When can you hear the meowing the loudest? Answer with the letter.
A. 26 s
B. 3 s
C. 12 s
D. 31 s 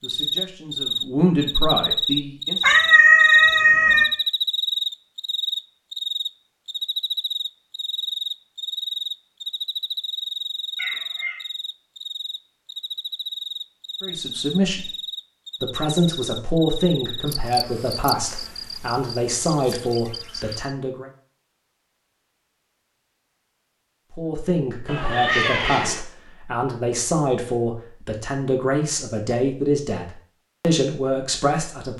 B.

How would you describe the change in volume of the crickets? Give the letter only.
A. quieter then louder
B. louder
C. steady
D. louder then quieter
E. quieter
E.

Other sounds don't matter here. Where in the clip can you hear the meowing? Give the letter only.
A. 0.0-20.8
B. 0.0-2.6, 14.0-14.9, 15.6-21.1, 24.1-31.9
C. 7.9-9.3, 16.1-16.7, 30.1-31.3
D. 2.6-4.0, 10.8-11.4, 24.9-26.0
D.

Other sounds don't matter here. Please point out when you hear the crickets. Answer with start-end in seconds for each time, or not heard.
0.0-20.8.